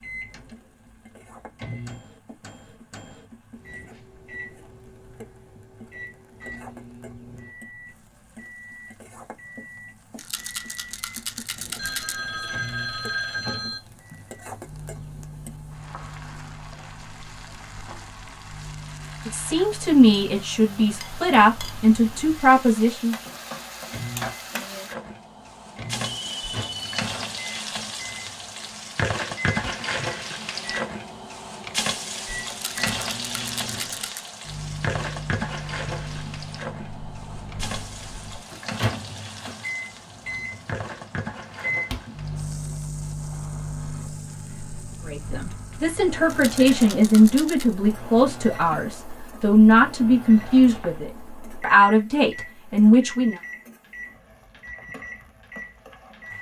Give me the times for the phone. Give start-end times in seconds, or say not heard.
11.8-13.8, 26.2-27.1, 50.4-51.0.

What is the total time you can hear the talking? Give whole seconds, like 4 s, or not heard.
12 s.